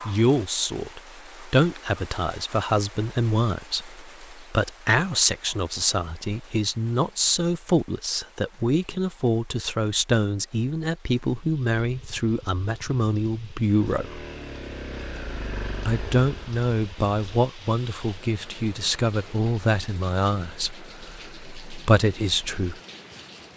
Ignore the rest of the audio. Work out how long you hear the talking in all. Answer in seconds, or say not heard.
21 s.